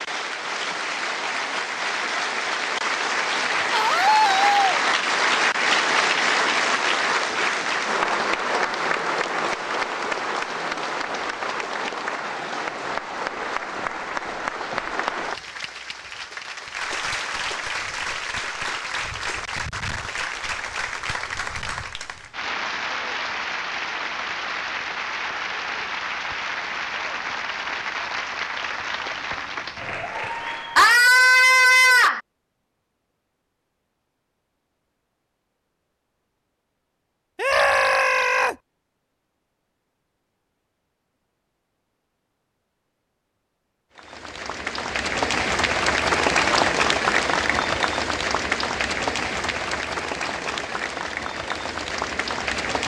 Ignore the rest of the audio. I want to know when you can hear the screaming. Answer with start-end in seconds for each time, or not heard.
3.7-4.8, 30.8-32.2, 37.4-38.5.